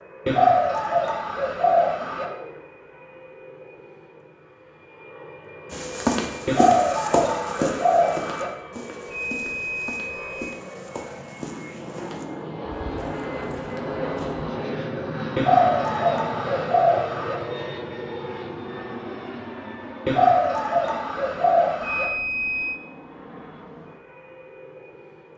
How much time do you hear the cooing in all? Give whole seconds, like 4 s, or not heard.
8 s.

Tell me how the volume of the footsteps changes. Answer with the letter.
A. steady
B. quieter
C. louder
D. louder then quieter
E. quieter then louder
B.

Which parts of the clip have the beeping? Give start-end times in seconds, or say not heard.
9.1-10.6, 21.8-22.8.